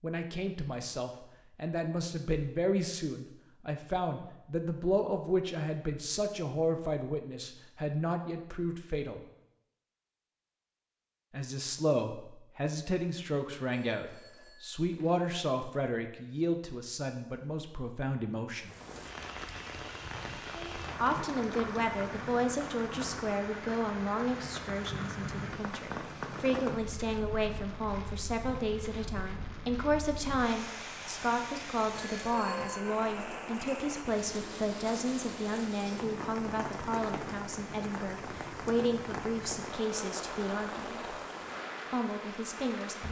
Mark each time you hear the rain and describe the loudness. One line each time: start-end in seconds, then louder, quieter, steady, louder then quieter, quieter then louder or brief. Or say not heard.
18.6-43.0 steady.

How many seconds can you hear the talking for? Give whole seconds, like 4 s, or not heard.
38 s.